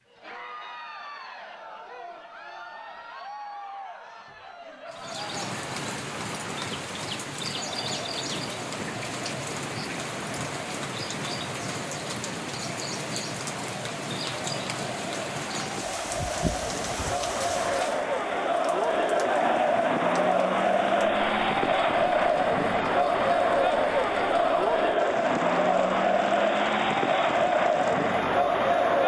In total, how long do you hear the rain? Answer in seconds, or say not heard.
24 s.